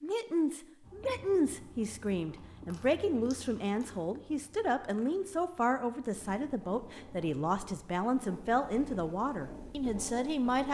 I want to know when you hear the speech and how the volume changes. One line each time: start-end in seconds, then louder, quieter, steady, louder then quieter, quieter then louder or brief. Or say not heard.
0.0-10.6 steady.